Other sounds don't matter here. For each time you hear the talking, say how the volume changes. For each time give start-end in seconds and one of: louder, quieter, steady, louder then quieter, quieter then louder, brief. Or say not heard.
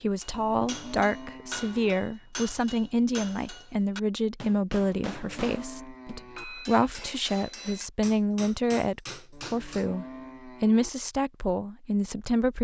0.0-12.5 steady.